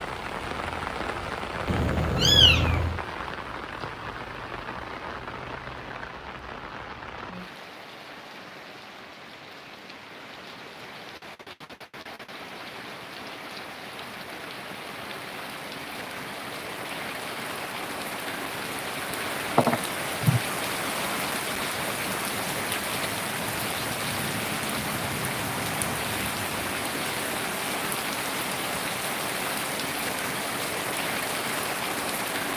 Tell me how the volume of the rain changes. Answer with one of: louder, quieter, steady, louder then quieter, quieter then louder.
quieter then louder.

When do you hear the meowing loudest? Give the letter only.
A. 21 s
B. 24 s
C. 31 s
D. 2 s
D.